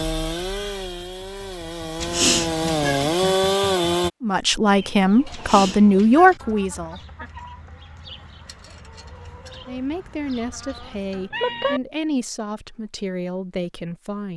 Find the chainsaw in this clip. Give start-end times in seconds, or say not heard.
0.0-4.1.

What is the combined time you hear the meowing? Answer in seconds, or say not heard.
3 s.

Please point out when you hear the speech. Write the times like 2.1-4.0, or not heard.
4.2-7.0, 9.7-14.3.